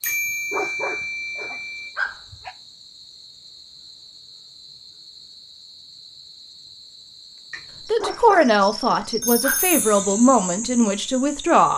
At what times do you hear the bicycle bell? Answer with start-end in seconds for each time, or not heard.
0.0-1.9, 9.2-10.1.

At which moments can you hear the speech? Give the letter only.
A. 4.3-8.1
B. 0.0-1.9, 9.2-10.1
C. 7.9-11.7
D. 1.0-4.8
C.